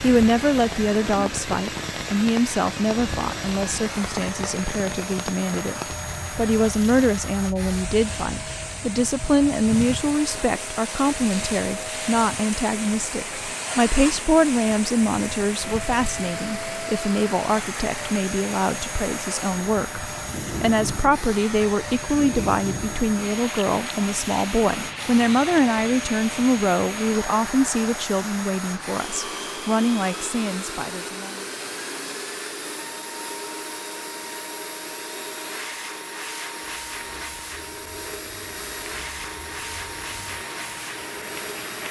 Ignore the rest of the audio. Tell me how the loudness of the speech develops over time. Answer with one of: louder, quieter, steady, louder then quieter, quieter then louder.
steady.